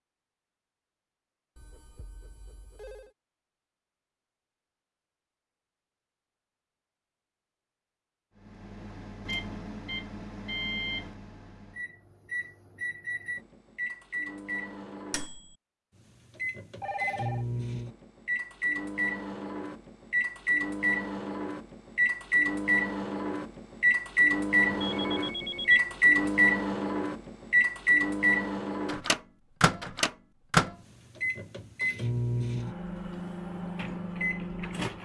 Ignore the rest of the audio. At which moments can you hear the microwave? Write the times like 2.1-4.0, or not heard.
8.4-35.0.